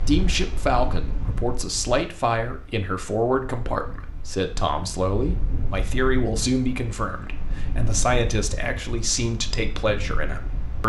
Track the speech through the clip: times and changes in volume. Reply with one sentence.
The speech can be heard from 0.1 to 10.8 s, at a steady volume.